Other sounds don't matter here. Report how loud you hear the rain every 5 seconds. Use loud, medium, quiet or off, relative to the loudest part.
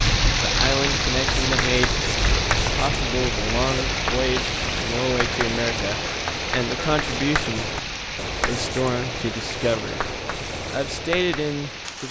loud, medium, medium.